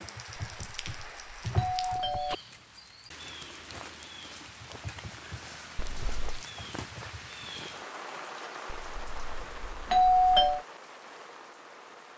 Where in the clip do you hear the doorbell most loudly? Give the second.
10 s.